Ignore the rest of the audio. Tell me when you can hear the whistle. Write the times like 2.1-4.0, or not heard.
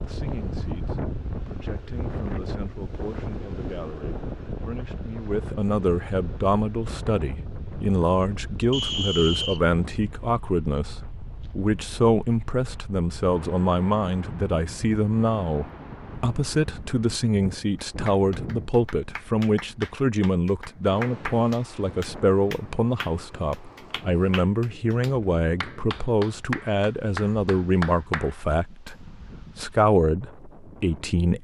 8.7-9.6.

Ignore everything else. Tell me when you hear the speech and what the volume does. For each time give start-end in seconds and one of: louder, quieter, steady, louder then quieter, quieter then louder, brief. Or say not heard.
0.0-31.4 louder.